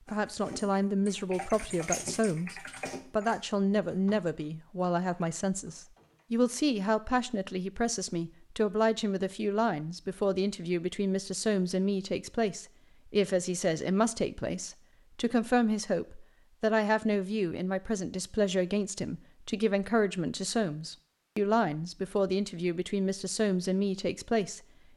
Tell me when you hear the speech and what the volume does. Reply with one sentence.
The speech can be heard from 0.1 to 24.6 s, at a steady volume.